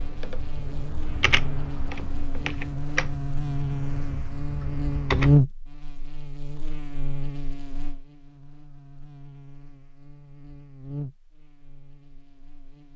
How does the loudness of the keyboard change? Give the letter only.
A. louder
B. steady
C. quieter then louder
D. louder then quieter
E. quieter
D.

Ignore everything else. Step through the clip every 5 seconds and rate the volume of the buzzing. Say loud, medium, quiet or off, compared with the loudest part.
medium, loud, quiet.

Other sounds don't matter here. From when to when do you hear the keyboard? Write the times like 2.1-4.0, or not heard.
0.0-5.3.